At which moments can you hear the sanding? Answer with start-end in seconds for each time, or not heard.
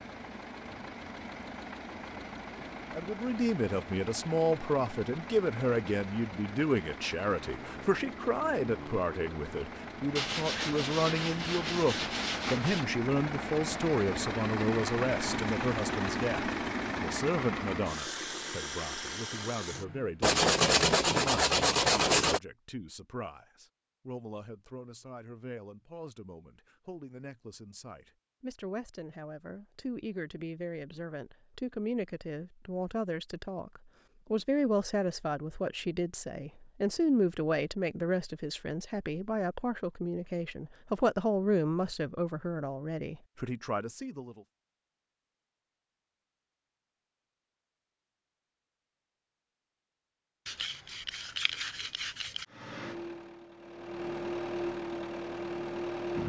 10.2-12.9, 20.2-22.4, 50.5-52.5.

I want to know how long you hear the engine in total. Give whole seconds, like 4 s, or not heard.
24 s.